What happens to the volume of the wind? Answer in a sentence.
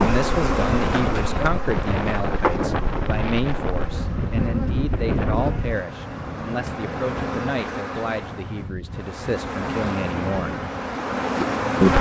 The loudness of the wind goes down.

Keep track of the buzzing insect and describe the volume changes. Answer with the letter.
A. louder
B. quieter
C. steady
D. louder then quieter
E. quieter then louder
E.